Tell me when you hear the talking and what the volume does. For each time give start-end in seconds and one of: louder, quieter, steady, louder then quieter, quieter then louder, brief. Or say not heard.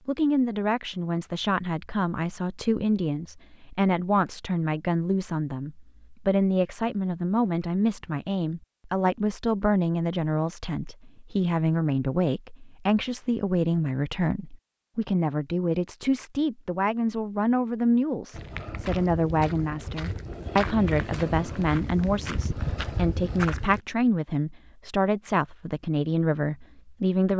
0.1-27.3 steady.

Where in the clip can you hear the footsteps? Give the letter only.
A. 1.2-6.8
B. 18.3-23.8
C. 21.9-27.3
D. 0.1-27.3
B.